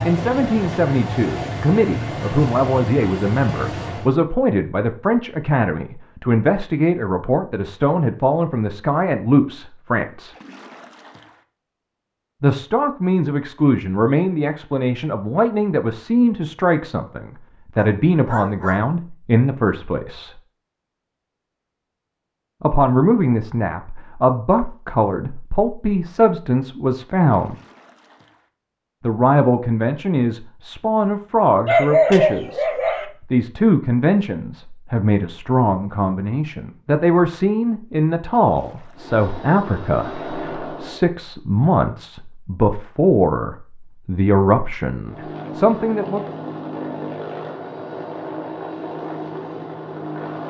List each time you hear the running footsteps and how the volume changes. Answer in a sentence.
You can't hear the running footsteps here.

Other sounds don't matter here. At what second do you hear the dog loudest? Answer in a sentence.
The volume of the dog peaks at 32 seconds.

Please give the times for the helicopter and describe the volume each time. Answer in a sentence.
You can hear the helicopter from 0.0 to 4.2 s, at a steady volume; briefly from 39.0 to 41.0 s; and from 45.0 to 50.4 s, at a steady volume.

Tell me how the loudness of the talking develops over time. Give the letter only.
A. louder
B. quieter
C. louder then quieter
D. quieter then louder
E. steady
E.